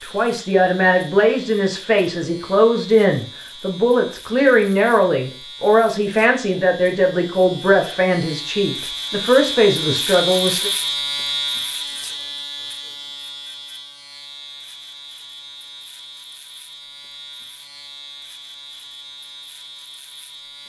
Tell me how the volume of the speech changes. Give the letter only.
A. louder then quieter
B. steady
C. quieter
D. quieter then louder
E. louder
B.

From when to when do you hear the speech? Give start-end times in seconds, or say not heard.
0.0-10.7.